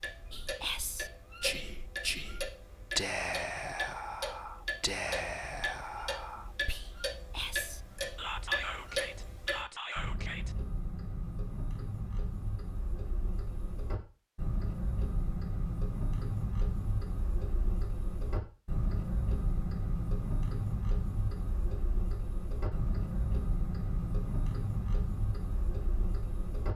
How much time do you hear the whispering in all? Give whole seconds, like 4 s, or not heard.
10 s.